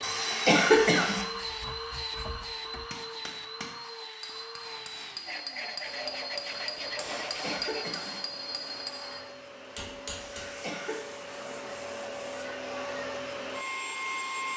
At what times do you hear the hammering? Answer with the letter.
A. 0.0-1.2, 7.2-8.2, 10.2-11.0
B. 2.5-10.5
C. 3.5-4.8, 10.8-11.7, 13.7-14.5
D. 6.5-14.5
B.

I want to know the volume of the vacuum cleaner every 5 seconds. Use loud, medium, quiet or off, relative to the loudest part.
loud, medium, loud.